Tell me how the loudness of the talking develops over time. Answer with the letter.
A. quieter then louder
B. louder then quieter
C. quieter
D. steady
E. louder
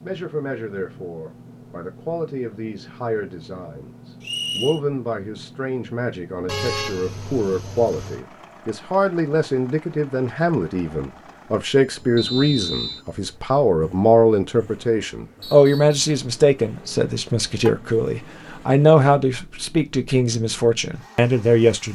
E.